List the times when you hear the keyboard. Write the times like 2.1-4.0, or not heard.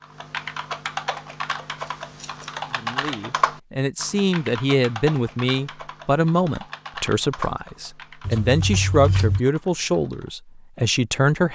0.0-10.3.